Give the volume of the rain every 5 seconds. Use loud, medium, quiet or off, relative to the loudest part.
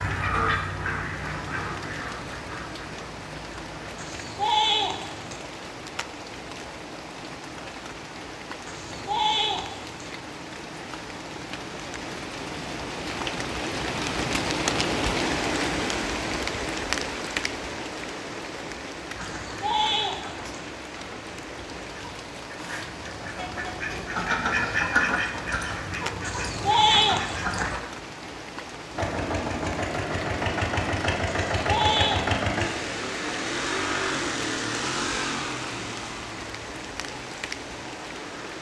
medium, medium, loud, loud, medium, medium, medium, medium.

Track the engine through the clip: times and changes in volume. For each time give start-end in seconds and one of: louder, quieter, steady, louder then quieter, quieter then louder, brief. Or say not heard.
28.9-38.5 quieter.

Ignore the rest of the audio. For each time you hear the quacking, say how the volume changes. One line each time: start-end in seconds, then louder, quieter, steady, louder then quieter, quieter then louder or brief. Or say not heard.
0.0-4.0 quieter
19.1-27.8 louder then quieter.